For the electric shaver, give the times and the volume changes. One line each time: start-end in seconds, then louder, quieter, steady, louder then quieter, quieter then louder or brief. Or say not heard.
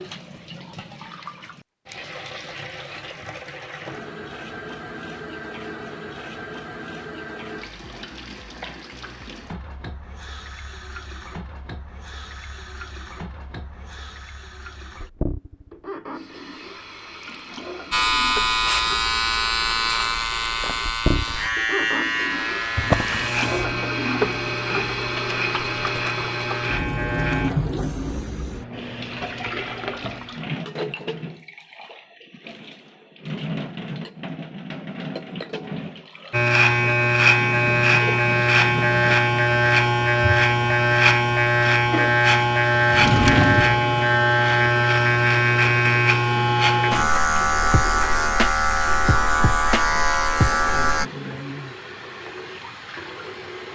17.9-27.5 quieter
36.3-51.0 steady.